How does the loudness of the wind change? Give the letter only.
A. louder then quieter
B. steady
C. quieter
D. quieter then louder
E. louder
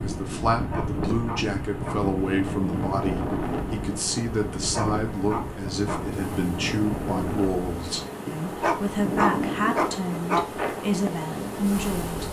B.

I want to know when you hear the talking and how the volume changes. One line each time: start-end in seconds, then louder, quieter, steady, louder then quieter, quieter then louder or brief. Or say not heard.
0.0-12.2 steady.